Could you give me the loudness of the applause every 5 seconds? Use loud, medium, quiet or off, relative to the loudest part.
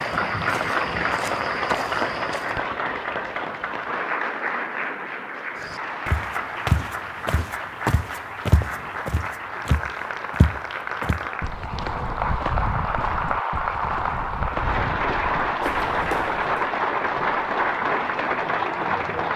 loud, medium, loud, loud.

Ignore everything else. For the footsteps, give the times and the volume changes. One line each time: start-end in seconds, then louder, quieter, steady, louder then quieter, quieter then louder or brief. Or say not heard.
0.0-2.6 brief
5.5-16.6 quieter.